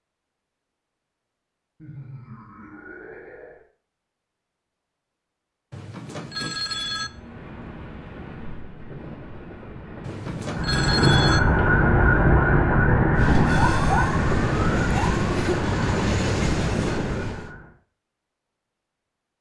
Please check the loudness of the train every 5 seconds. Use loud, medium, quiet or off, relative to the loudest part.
off, quiet, loud, loud.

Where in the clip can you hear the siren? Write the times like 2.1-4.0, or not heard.
10.5-17.8.